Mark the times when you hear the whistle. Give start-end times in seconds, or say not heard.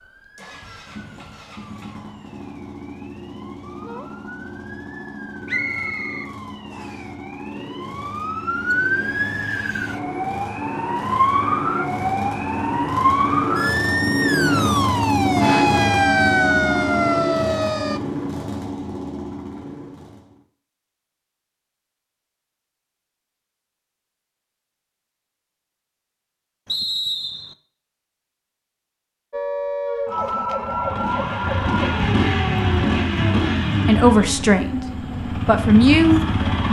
5.5-7.0, 26.6-27.6.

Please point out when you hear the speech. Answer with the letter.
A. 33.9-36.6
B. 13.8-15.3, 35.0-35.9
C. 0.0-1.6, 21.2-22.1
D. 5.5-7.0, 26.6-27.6
A.